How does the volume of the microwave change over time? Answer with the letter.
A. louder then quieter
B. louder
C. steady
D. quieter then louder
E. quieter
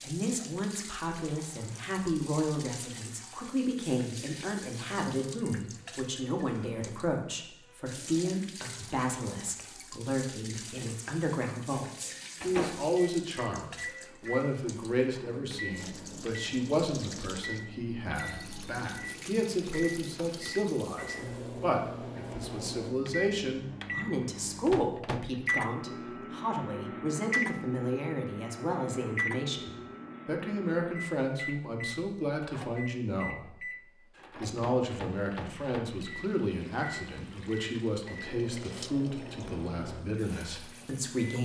A.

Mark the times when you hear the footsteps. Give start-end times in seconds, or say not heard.
not heard.